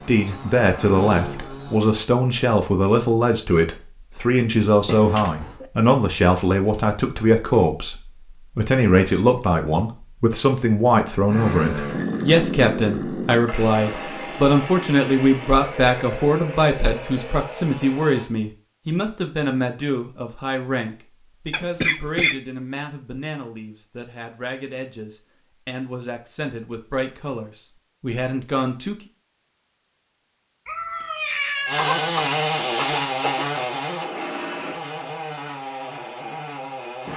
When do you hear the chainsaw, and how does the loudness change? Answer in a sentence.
You can hear the chainsaw briefly from 0.0 to 1.8 s; from 11.2 to 18.3 s, getting quieter; and from 31.6 to 37.1 s, getting quieter.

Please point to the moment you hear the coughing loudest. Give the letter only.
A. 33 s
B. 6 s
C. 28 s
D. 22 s
D.